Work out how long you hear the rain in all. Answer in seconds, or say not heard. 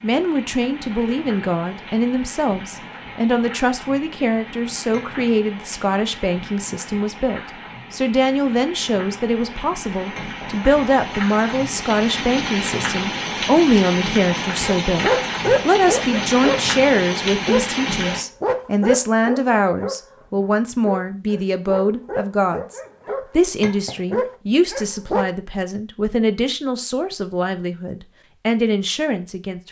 18 s.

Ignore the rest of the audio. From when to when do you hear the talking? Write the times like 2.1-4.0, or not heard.
0.0-29.6.